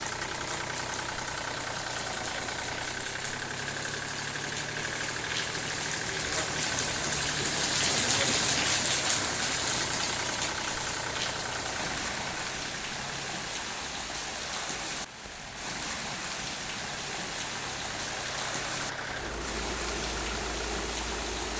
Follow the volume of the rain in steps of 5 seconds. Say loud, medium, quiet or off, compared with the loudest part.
medium, loud, medium, medium, medium.